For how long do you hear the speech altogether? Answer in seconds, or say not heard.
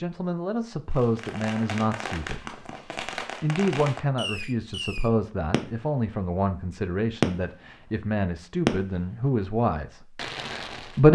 10 s.